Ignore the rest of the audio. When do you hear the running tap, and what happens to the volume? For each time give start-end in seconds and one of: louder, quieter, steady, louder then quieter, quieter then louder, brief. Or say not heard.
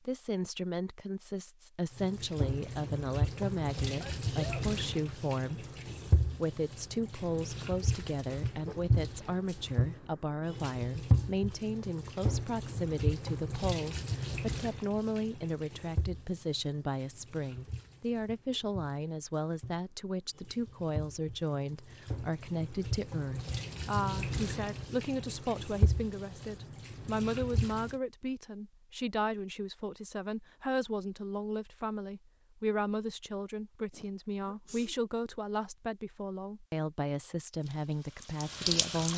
1.9-27.9 quieter then louder
37.6-39.1 brief.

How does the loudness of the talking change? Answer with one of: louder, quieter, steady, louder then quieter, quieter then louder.
steady.